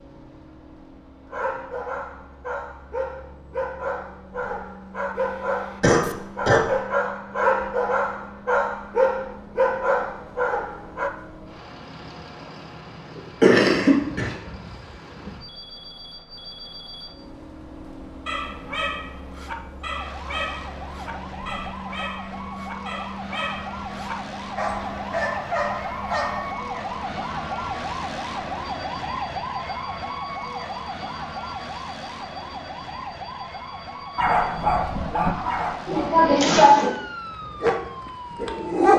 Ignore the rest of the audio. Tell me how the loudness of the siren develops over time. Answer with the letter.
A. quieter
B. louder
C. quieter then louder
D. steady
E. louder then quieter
E.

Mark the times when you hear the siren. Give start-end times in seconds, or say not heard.
19.8-38.6.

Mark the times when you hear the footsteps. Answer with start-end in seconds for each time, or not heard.
not heard.